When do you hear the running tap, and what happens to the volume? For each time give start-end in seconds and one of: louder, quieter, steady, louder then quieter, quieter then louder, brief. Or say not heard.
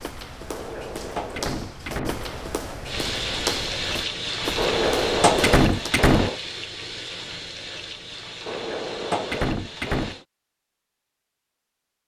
2.9-10.2 quieter.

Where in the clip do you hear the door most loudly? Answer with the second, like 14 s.
5 s.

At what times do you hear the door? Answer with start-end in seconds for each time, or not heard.
0.5-2.5, 4.5-6.3, 8.4-10.2.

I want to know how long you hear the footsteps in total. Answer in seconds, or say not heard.
6 s.